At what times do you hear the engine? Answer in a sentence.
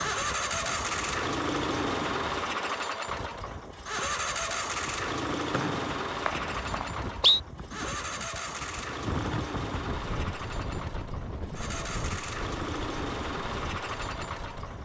You can hear the engine from 0.0 to 14.8 s.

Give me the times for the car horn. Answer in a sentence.
The car horn can't be heard in this clip.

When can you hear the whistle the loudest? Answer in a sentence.
The loudest moment of the whistle is at 7 seconds.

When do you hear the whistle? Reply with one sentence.
You can hear the whistle from 5.5 to 7.4 s.